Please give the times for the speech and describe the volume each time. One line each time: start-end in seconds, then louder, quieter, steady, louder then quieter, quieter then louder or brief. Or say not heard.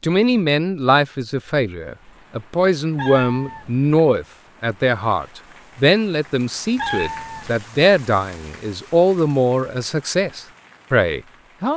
0.0-11.7 steady.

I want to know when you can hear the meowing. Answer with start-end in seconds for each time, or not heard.
3.0-3.9, 6.8-7.5.